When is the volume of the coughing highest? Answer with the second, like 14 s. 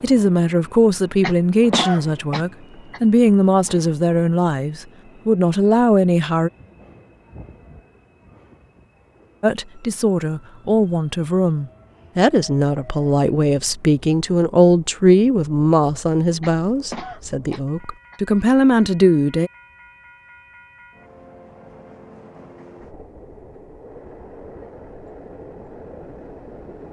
2 s.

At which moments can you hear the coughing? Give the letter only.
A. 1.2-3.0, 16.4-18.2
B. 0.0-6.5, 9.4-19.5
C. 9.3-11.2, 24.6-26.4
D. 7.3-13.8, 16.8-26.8
A.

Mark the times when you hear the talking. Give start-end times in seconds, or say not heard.
0.0-6.5, 9.4-19.5.